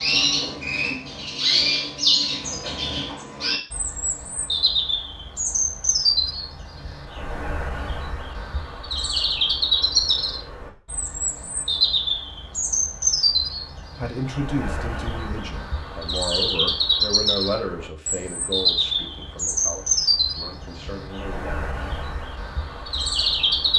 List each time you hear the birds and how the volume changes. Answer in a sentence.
The birds can be heard from 0.0 to 23.7 s, at a steady volume.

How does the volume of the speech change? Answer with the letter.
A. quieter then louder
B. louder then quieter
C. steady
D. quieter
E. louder
D.